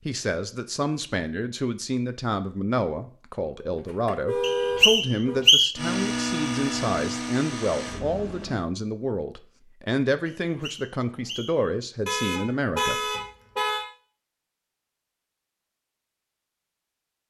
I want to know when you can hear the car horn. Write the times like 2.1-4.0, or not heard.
3.8-5.4, 12.1-13.8.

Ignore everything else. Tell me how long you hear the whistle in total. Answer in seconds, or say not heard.
3 s.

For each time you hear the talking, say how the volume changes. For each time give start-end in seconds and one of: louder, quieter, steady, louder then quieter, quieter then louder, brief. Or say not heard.
0.1-13.0 steady.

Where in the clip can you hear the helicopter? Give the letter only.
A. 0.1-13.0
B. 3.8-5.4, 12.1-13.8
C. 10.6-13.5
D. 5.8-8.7
D.